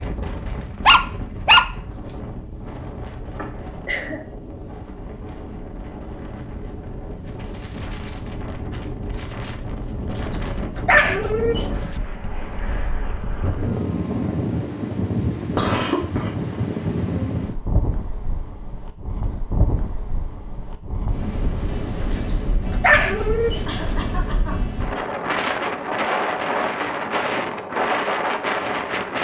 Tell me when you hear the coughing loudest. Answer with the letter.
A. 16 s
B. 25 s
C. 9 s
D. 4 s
A.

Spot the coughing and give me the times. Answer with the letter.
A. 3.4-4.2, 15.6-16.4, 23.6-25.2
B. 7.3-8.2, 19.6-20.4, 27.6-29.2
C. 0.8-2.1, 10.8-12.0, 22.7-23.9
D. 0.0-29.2
A.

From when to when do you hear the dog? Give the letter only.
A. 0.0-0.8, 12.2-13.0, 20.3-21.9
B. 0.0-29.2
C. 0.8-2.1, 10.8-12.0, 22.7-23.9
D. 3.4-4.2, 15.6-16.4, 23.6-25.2
C.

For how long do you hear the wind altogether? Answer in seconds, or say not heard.
29 s.